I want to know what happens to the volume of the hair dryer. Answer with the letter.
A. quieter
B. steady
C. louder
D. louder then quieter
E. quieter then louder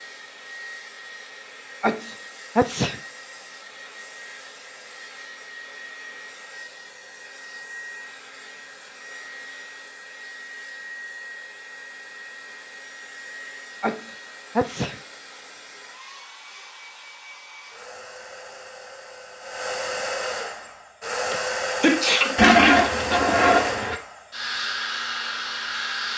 C.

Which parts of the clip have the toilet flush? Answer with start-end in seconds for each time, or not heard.
22.4-23.9.